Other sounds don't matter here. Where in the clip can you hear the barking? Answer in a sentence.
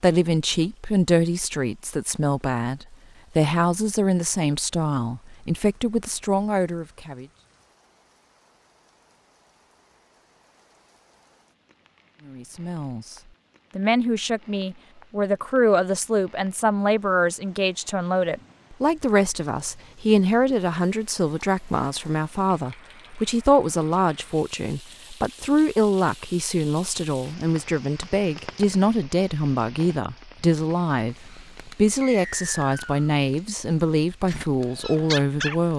You can hear the barking from 34.2 to 35.6 s.